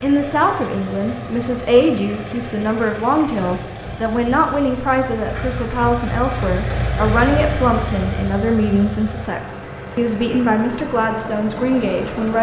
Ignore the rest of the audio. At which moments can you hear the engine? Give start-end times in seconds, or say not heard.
0.0-12.3.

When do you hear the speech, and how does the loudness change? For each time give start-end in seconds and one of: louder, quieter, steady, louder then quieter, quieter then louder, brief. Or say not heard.
0.0-12.3 steady.